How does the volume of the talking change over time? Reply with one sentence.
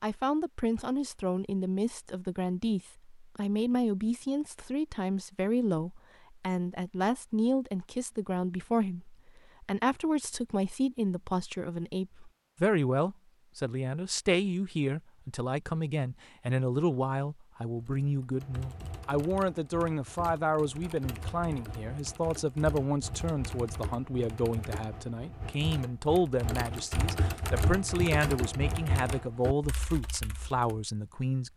The volume of the talking stays about the same.